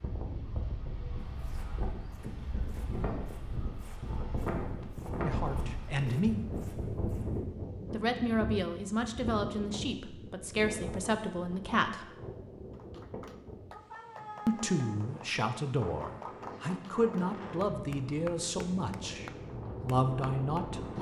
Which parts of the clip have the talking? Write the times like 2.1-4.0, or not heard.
5.2-6.3, 7.9-12.1, 14.4-20.9.